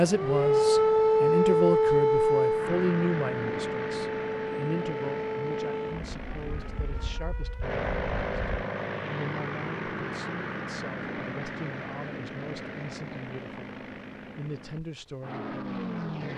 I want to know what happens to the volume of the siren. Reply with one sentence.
The volume of the siren goes down.